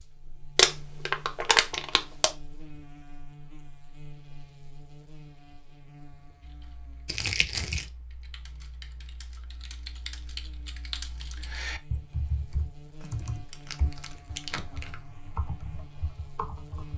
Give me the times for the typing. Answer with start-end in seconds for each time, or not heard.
6.4-16.9.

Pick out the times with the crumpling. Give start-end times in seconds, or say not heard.
0.6-2.3, 7.0-7.8, 13.0-14.9.